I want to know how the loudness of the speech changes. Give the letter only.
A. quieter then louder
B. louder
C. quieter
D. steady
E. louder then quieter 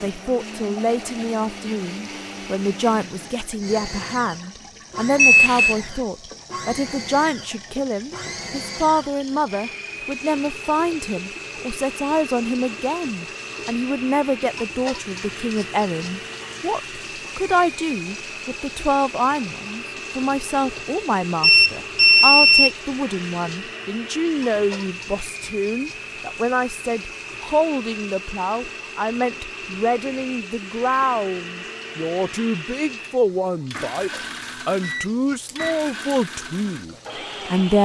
D.